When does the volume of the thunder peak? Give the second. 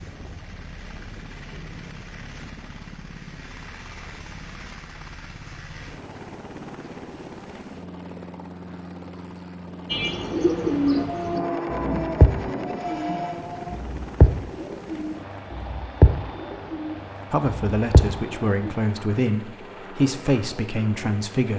12 s.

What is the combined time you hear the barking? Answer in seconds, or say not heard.
3 s.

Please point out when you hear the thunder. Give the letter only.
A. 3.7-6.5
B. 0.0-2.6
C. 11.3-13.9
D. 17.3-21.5
C.